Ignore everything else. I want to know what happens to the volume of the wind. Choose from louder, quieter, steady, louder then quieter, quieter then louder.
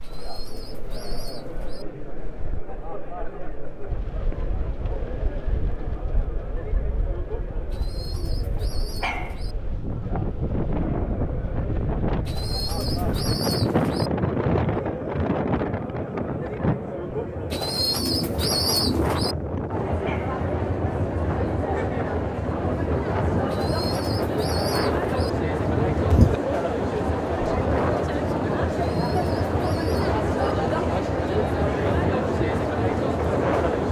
louder.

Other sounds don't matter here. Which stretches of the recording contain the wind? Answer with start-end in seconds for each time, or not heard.
0.0-33.8.